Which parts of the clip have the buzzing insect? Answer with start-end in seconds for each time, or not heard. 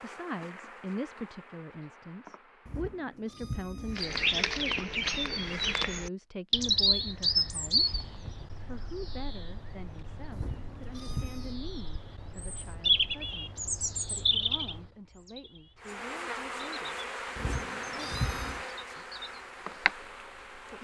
0.0-3.3, 15.8-20.7.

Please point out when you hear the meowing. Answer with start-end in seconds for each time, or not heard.
2.6-4.0, 10.3-11.6, 17.4-18.6.